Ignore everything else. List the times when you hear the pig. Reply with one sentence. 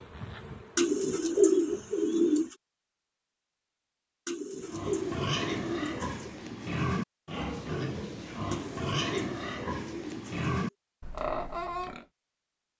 The pig can be heard from 4.6 to 12.1 s.